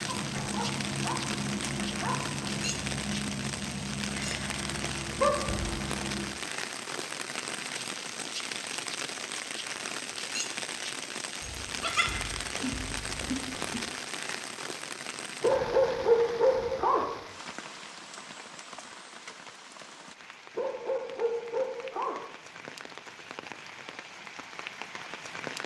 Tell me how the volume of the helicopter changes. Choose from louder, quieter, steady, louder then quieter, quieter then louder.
steady.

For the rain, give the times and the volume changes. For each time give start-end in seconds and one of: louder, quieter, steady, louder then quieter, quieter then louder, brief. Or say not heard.
0.0-25.6 quieter.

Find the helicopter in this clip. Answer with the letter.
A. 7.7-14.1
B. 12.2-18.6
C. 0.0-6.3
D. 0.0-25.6
C.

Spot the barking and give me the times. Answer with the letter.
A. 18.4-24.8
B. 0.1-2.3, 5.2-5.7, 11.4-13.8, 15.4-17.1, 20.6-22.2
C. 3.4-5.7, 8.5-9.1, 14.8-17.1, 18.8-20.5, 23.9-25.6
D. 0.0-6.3
B.